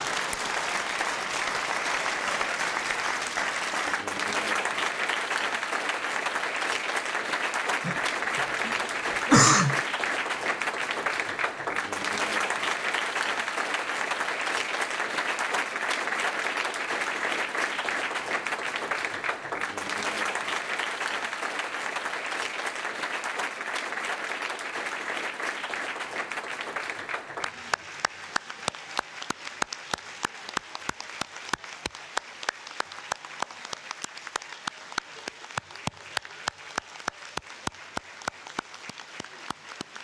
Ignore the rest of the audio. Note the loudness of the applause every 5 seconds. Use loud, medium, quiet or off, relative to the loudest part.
loud, loud, loud, loud, loud, medium, medium, medium.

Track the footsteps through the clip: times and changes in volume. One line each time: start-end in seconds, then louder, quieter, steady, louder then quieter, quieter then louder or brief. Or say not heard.
not heard.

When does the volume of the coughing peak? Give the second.
9 s.